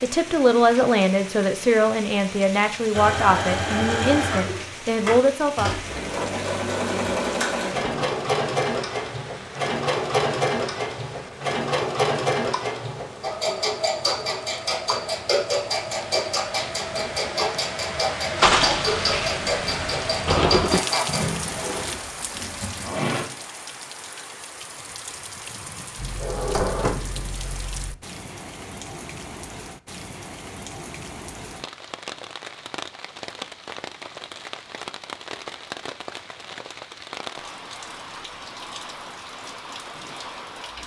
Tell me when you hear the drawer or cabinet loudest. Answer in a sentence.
The volume of the drawer or cabinet peaks at 27 seconds.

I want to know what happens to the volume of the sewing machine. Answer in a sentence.
The loudness of the sewing machine stays about the same.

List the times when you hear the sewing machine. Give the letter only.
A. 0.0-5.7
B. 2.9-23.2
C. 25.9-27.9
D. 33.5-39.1
B.